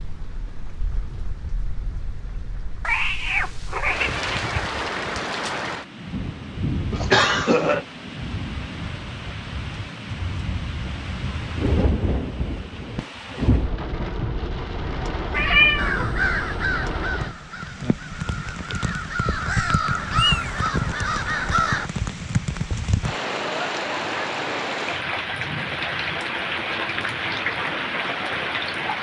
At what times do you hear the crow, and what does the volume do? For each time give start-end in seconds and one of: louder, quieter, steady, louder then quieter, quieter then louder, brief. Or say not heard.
15.8-21.9 quieter then louder.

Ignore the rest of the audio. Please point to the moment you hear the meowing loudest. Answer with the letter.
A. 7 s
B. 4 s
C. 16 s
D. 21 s
C.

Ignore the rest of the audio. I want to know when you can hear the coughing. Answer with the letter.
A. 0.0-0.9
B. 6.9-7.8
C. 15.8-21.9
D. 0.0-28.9
B.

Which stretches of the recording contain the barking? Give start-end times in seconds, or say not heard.
not heard.